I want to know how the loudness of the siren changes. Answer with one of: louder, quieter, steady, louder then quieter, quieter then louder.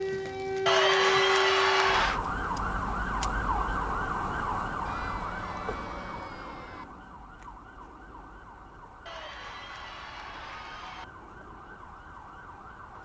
quieter.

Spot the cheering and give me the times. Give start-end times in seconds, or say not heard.
0.7-2.2, 4.8-6.8, 9.1-11.1.